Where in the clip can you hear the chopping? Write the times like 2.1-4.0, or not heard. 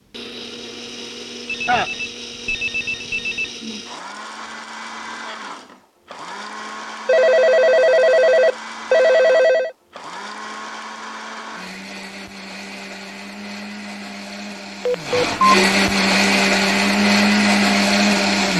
not heard.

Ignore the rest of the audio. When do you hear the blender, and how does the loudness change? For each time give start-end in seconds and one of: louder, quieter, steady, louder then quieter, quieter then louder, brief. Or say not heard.
0.0-18.5 louder.